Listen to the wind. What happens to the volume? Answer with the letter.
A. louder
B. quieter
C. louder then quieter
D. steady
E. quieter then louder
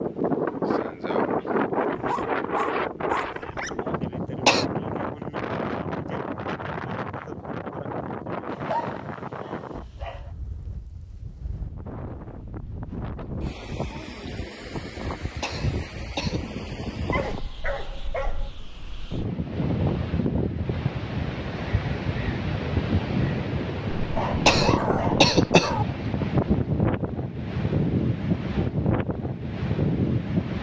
E.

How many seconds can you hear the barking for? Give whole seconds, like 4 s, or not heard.
7 s.